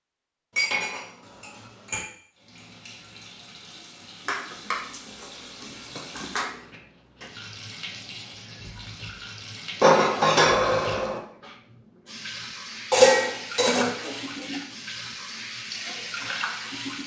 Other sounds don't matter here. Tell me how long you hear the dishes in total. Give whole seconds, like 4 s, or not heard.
7 s.